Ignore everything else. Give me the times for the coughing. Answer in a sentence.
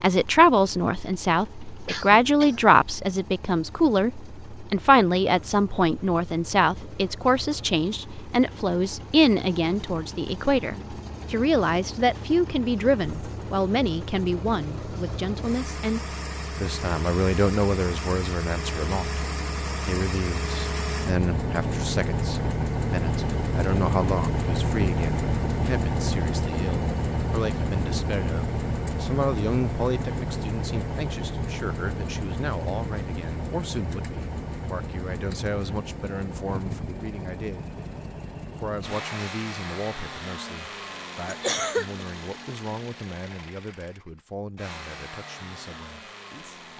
You can hear the coughing from 1.9 to 2.7 s and from 41.2 to 42.0 s.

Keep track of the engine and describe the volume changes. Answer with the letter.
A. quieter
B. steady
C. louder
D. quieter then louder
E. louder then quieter
E.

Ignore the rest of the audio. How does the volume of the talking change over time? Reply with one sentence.
The loudness of the talking goes down.